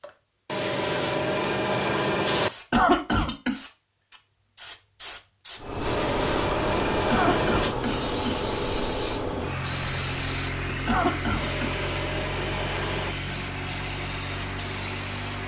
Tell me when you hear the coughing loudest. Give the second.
3 s.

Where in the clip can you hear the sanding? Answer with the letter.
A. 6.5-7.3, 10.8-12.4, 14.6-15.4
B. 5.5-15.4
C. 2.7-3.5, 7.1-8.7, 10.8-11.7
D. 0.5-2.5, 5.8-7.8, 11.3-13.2
D.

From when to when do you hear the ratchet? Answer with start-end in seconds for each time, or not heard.
not heard.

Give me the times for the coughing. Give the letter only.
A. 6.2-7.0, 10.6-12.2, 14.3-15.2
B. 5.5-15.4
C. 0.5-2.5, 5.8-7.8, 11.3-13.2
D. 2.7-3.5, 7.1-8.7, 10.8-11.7
D.